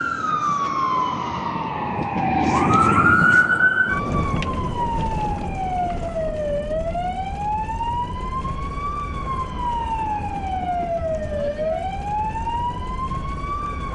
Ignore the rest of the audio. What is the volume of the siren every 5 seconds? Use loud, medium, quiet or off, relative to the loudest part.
loud, medium, medium.